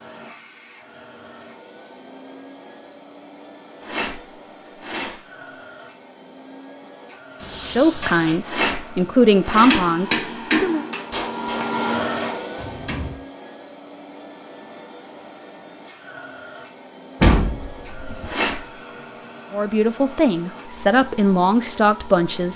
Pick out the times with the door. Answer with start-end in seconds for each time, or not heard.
7.4-8.4, 17.2-18.3.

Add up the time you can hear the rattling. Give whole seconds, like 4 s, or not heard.
4 s.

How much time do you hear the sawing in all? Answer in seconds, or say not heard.
not heard.